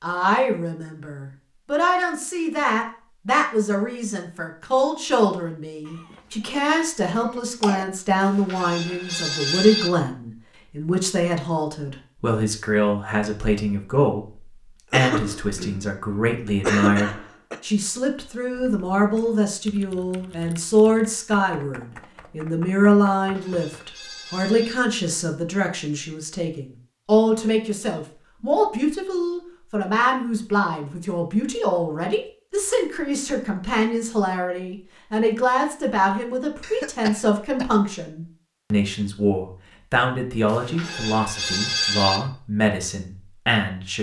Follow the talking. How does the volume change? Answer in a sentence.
The loudness of the talking stays about the same.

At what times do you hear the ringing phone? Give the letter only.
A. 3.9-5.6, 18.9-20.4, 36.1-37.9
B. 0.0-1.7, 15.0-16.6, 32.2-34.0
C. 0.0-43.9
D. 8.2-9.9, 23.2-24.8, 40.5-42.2
D.